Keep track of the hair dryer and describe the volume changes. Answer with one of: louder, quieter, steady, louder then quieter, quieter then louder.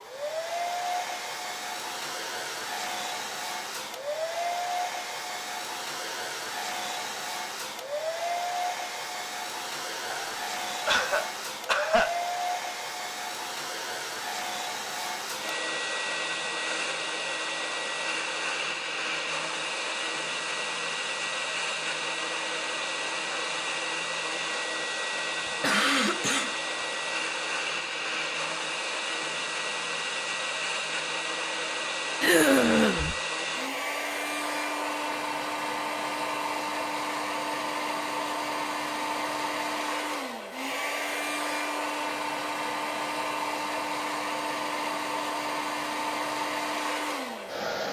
steady.